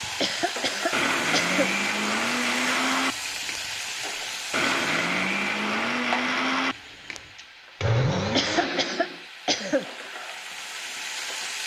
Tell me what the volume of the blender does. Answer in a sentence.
The volume of the blender stays about the same.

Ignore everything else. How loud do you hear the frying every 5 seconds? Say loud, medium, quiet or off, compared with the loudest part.
loud, medium, loud.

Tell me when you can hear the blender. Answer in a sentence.
You can hear the blender from 0.0 to 9.2 s.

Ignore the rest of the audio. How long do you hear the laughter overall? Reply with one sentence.
The laughter can be heard for 3 seconds in total.